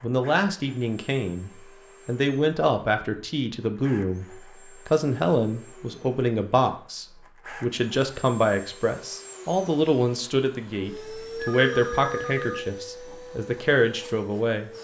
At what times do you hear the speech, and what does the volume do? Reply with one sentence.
You can hear the speech from 0.0 to 14.7 s, at a steady volume.